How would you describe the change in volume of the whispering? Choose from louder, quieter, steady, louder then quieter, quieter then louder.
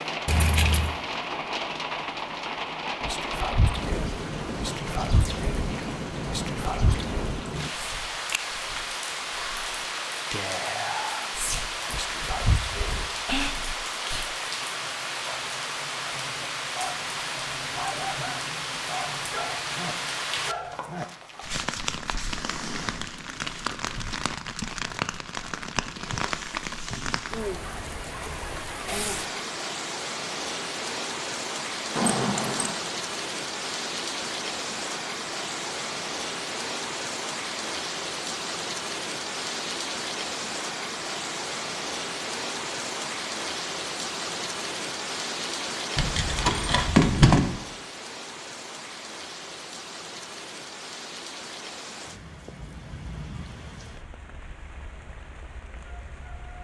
quieter then louder.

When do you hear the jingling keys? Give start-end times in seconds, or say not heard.
0.2-0.9, 31.9-32.8, 46.0-47.5.